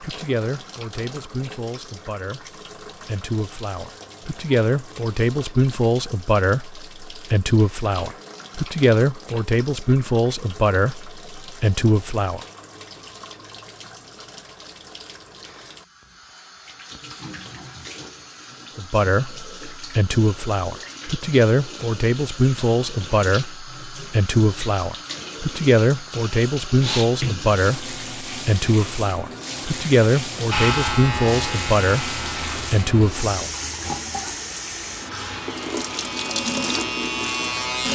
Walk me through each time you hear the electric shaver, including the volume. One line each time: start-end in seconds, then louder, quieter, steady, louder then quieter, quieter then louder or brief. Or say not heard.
30.5-37.9 quieter then louder.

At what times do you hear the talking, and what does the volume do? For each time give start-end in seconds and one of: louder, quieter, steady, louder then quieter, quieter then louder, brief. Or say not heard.
0.0-12.4 louder
18.8-33.5 steady.